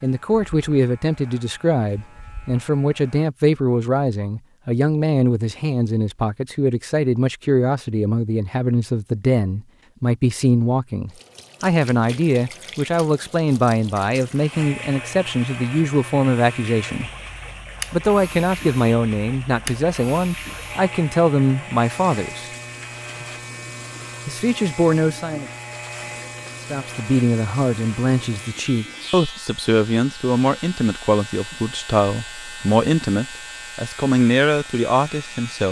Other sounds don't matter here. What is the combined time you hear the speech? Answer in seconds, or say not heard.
32 s.